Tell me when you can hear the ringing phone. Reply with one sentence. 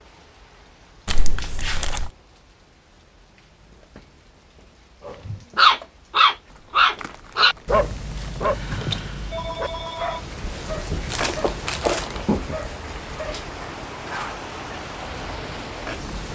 You can hear the ringing phone from 9.3 to 10.2 s.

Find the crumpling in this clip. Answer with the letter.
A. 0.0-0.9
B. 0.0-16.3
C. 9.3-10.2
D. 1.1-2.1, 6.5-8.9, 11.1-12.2
D.